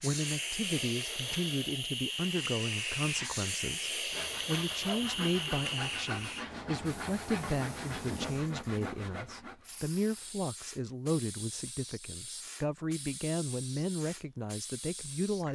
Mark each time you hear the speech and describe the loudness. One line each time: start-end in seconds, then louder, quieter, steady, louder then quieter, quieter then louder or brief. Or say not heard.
0.0-15.4 steady.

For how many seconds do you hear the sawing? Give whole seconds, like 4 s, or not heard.
8 s.